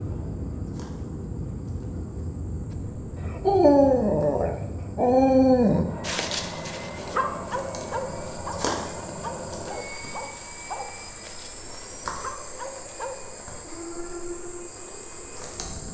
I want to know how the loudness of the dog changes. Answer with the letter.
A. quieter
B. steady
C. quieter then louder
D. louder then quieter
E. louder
A.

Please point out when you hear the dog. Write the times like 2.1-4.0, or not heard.
3.4-13.2.